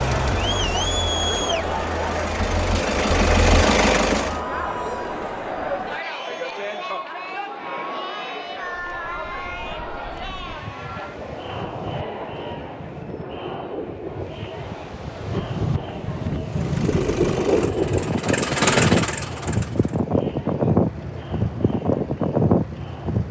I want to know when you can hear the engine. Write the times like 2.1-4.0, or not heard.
0.0-4.4, 16.4-20.0.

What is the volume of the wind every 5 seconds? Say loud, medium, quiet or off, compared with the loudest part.
off, quiet, quiet, loud, loud.